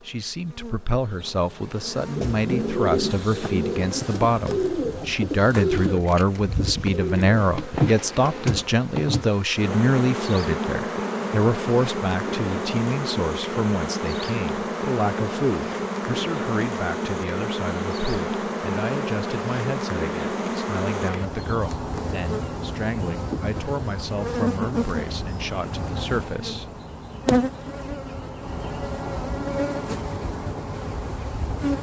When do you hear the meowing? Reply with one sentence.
The meowing can't be heard in this clip.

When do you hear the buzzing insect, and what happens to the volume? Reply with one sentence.
The buzzing insect can be heard from 0.0 to 31.7 s, getting louder.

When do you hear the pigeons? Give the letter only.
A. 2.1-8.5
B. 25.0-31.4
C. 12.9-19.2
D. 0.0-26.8
A.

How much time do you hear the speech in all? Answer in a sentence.
The speech can be heard for 27 seconds in total.